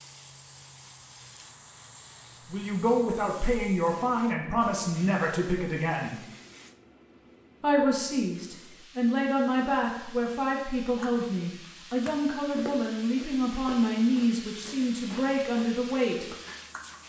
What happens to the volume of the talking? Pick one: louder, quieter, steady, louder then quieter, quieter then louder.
steady.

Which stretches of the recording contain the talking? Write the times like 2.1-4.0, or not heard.
2.5-6.2, 7.6-16.2.